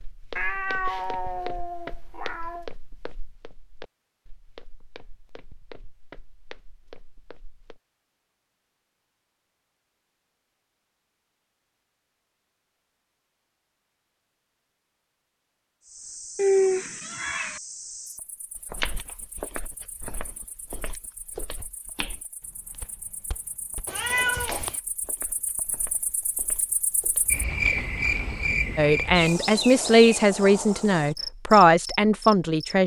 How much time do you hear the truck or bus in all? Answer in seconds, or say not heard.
not heard.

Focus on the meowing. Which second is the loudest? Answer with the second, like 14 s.
17 s.